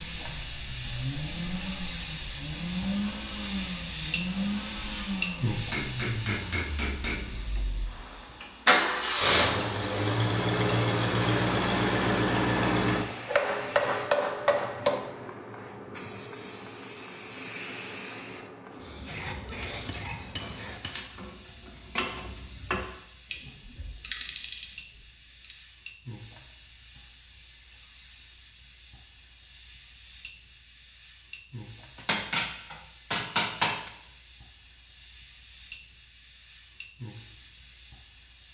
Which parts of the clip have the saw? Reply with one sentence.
You can't hear the saw here.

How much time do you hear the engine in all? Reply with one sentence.
You can hear the engine for 13 seconds altogether.